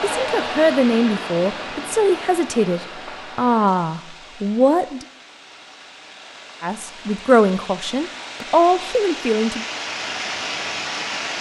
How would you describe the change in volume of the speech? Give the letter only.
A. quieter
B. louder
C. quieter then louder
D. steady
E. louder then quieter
D.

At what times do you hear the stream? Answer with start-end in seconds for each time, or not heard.
0.0-11.3.